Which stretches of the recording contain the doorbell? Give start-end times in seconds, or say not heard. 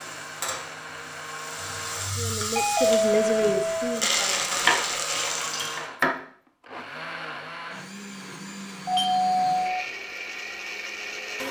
2.5-4.0, 8.8-9.8.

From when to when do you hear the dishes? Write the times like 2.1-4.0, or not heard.
not heard.